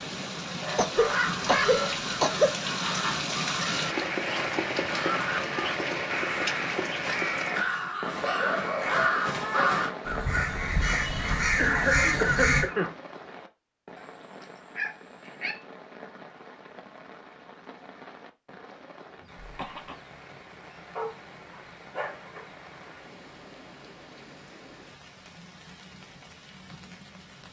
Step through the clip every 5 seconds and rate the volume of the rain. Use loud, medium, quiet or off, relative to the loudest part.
loud, loud, medium, quiet, quiet, quiet.